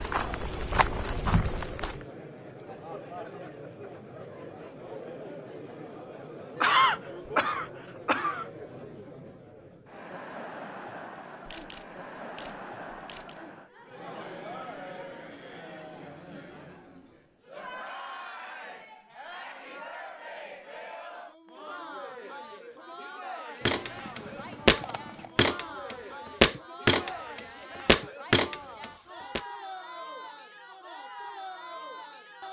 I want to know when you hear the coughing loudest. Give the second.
7 s.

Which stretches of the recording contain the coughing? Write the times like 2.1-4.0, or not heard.
6.6-8.4.